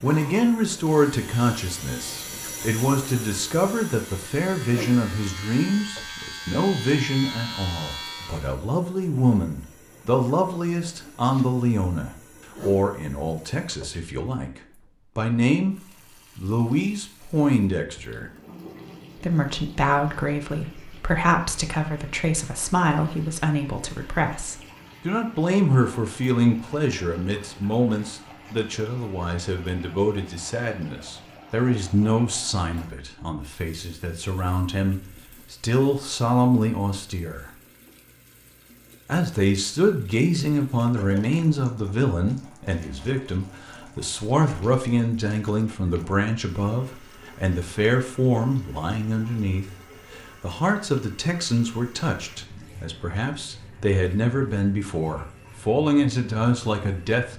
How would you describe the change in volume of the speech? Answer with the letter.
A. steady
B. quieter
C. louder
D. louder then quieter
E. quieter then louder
A.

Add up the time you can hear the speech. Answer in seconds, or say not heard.
55 s.